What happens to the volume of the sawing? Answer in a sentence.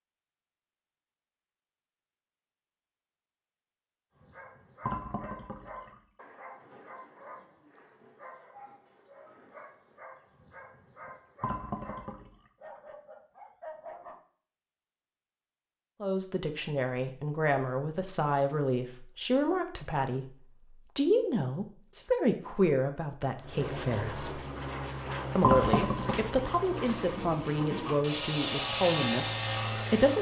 The volume of the sawing goes up.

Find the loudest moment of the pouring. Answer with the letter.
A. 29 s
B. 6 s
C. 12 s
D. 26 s
D.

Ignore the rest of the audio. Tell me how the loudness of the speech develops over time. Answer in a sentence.
The volume of the speech stays about the same.